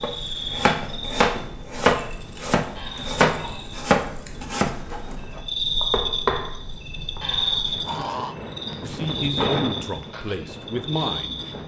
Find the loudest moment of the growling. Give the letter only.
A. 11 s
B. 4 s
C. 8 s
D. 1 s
C.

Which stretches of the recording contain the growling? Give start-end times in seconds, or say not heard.
2.8-3.6, 7.2-8.3.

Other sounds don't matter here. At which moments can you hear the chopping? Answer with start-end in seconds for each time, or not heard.
0.0-7.2.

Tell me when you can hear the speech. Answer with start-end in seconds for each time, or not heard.
8.8-11.4.